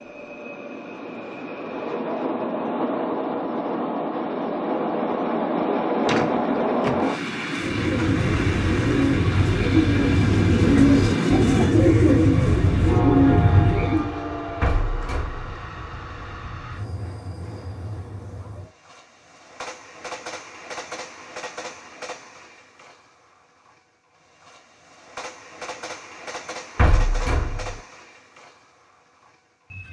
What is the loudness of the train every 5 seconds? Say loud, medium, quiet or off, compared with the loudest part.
loud, loud, loud, quiet, quiet, quiet.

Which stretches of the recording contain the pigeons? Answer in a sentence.
You can hear the pigeons from 7.5 to 14.2 s.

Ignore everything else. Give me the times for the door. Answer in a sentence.
You can hear the door from 6.0 to 7.0 s, from 14.6 to 15.5 s and from 26.8 to 27.8 s.